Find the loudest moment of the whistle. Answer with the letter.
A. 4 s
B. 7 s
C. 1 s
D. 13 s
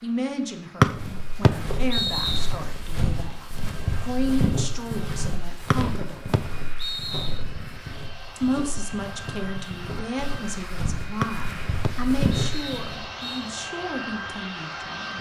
C.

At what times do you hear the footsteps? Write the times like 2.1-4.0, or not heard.
0.8-13.1.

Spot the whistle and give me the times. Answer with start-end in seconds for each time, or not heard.
0.8-2.5, 5.7-7.4, 11.2-13.5.